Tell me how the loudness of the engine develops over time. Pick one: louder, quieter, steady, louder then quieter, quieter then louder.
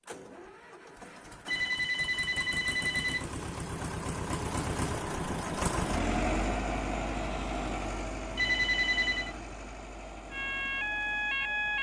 louder then quieter.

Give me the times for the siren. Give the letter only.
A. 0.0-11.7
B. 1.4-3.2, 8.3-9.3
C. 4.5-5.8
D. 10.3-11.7
D.